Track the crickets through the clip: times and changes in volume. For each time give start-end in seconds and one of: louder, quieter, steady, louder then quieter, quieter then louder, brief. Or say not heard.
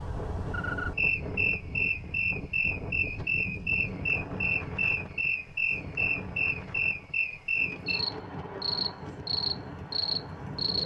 0.0-10.8 steady.